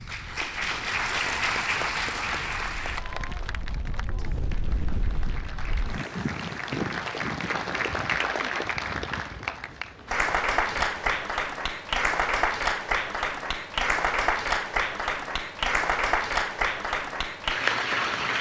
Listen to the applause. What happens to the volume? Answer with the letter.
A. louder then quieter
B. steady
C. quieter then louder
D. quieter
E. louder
C.